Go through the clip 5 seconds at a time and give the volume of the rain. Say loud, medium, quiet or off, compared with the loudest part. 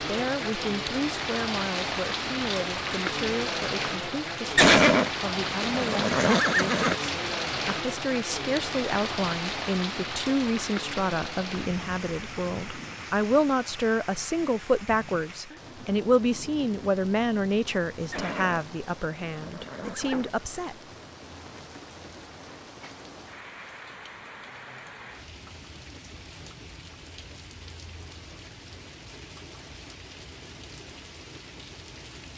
loud, loud, medium, quiet, quiet, quiet, quiet.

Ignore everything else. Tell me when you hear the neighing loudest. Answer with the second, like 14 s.
5 s.